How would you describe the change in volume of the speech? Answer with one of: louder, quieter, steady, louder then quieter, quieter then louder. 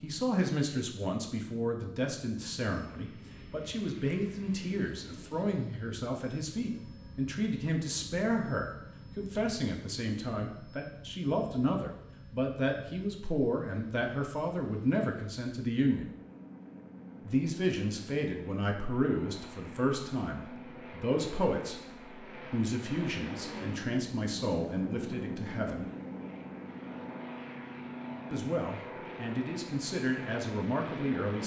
steady.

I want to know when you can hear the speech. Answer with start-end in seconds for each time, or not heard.
0.0-16.1, 17.2-25.9, 28.3-31.4.